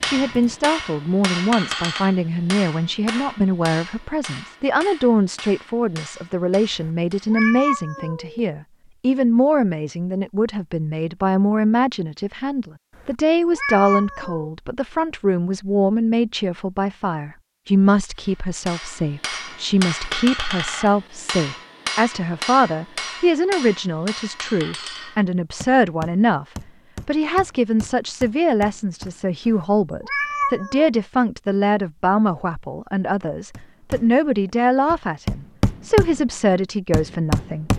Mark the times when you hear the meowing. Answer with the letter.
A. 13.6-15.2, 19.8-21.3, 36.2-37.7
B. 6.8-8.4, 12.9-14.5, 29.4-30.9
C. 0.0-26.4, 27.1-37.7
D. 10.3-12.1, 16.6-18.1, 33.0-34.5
B.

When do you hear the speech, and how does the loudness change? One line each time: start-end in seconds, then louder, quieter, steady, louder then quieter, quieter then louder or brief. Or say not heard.
0.0-26.4 steady
27.1-37.7 steady.